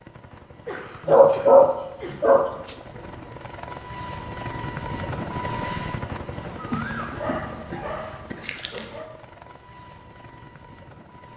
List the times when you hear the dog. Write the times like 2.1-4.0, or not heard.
1.1-2.8, 6.3-9.1.